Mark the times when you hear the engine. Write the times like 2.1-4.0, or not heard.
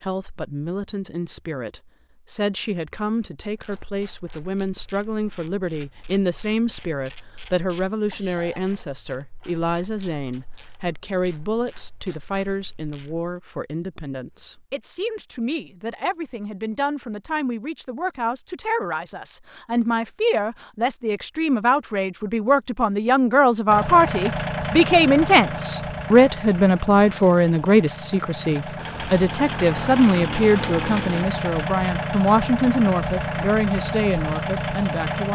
23.6-35.2.